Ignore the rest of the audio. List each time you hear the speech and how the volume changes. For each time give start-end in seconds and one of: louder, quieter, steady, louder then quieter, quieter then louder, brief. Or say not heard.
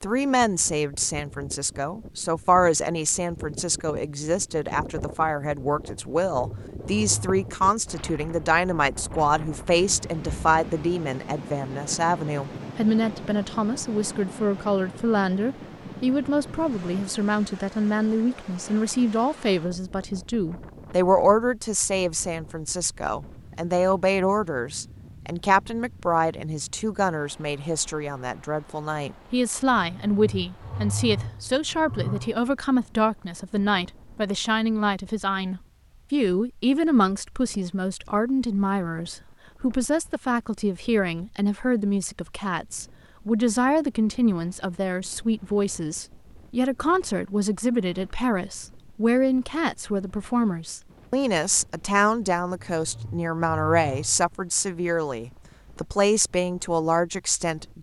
0.0-57.7 steady.